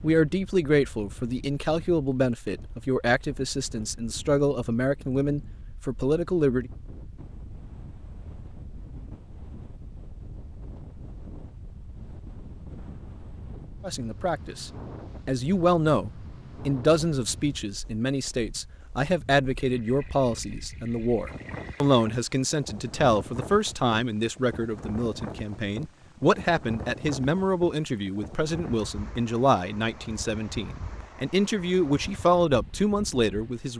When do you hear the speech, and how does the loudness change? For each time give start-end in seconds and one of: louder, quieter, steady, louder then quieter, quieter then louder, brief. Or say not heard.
0.0-6.7 steady
13.8-33.7 steady.